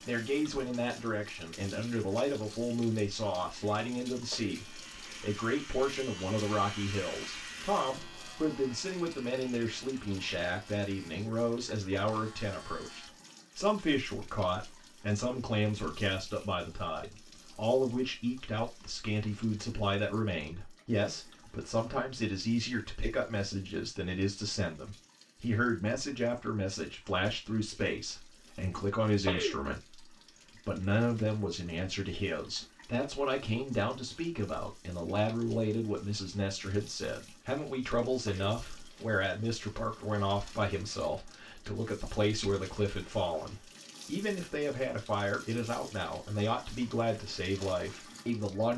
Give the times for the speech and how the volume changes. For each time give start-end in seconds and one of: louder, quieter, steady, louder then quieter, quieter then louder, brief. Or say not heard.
0.1-48.7 steady.